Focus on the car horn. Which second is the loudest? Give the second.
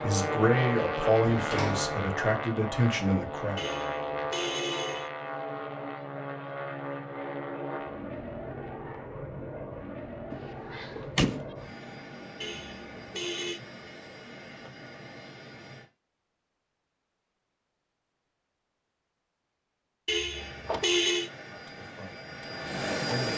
21 s.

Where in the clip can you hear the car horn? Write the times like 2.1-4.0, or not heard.
3.5-5.1, 12.4-13.6, 20.1-21.3.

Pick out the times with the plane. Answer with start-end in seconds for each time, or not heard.
0.0-15.9, 20.3-23.3.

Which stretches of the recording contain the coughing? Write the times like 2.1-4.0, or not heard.
not heard.